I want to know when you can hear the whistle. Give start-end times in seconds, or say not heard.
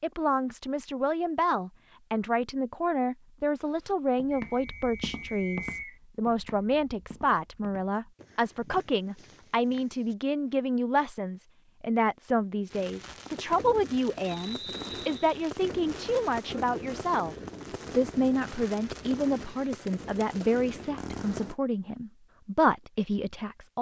4.3-6.0, 14.2-15.3.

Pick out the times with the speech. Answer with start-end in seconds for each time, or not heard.
0.0-17.4, 17.9-23.7.